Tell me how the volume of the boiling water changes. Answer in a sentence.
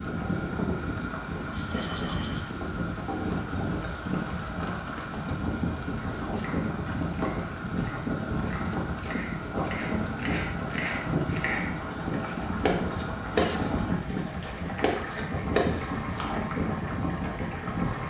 The volume of the boiling water stays about the same.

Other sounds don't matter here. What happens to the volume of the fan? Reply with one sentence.
The loudness of the fan stays about the same.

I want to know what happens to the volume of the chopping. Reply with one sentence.
The volume of the chopping goes up.